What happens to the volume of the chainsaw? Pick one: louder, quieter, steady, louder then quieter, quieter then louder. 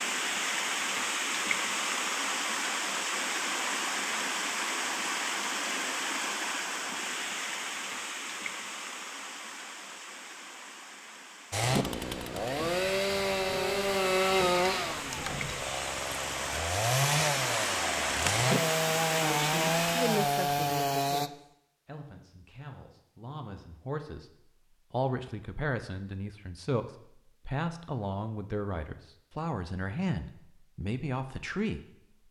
steady.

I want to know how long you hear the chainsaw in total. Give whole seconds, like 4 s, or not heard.
10 s.